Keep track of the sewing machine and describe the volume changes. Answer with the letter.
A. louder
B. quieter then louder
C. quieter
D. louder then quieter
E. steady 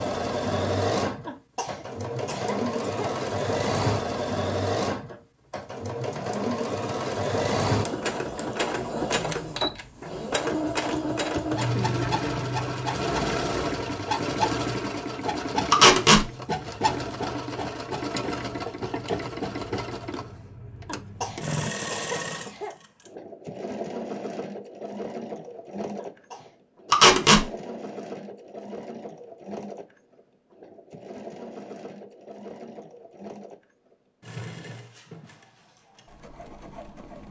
C.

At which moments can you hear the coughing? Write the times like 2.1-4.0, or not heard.
1.2-3.1, 20.9-22.8, 25.9-26.6.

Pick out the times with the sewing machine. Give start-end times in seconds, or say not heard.
0.0-37.2.